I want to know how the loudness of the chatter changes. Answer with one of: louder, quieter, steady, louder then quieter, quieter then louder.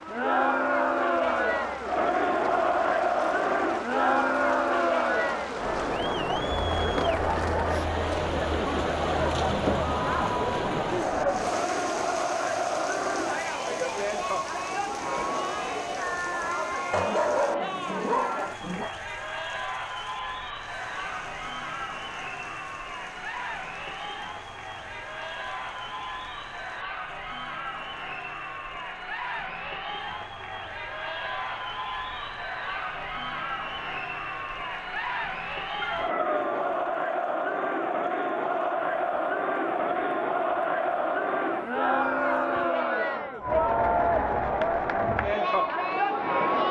quieter then louder.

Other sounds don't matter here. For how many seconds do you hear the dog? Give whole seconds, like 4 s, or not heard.
3 s.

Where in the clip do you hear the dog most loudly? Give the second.
17 s.